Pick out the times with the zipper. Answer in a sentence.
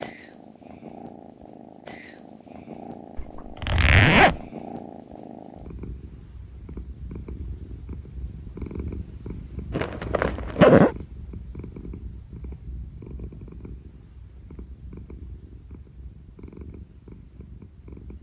The zipper can be heard from 3.1 to 4.4 s and from 9.7 to 10.9 s.